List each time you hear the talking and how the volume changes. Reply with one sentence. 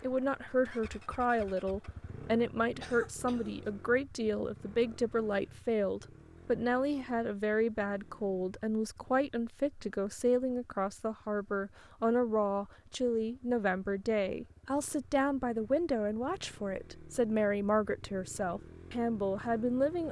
The talking can be heard from 0.0 to 20.0 s, at a steady volume.